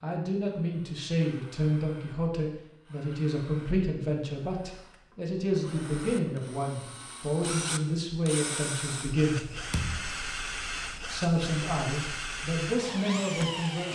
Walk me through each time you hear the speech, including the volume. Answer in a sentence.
The speech can be heard from 0.0 to 9.4 s, at a steady volume; and briefly from 11.1 to 13.8 s.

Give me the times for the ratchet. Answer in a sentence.
You can't hear the ratchet here.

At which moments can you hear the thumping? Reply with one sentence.
You can hear the thumping from 9.7 to 10.1 s.